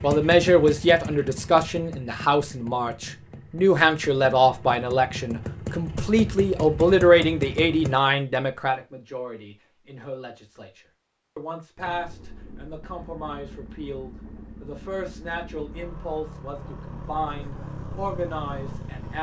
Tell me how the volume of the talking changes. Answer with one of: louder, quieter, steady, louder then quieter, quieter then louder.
quieter.